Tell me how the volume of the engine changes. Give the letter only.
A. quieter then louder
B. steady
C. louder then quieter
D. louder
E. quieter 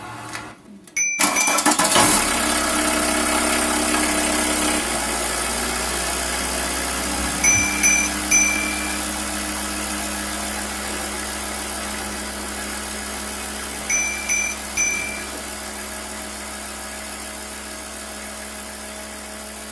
E.